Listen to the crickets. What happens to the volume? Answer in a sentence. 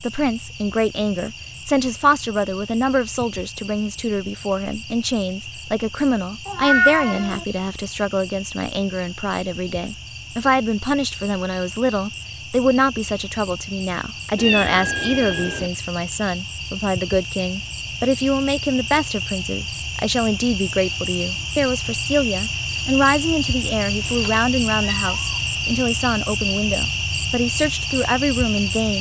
The loudness of the crickets goes up.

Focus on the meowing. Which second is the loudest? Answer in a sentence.
The loudest moment of the meowing is at 7 seconds.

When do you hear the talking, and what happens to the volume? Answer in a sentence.
The talking can be heard from 0.0 to 28.9 s, at a steady volume.